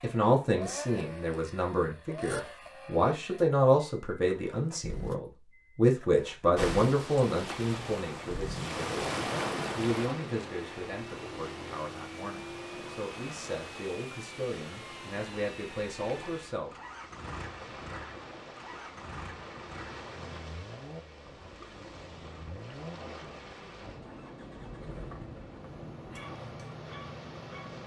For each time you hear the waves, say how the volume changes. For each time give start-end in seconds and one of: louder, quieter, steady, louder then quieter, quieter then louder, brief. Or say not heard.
6.5-27.8 quieter.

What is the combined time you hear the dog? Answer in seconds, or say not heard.
2 s.